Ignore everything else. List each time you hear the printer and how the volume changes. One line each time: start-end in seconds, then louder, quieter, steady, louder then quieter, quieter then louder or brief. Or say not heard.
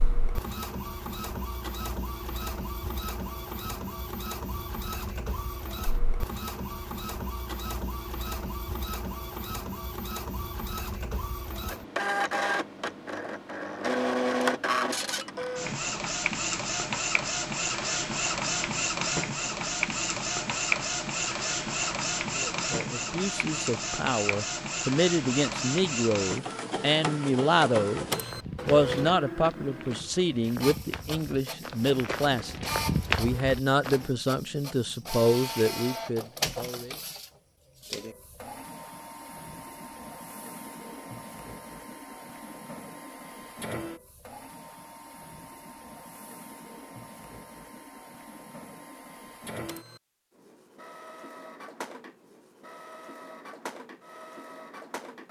0.0-55.2 louder then quieter.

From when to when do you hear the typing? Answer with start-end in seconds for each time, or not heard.
not heard.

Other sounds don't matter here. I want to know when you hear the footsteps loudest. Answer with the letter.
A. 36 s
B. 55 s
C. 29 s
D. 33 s
D.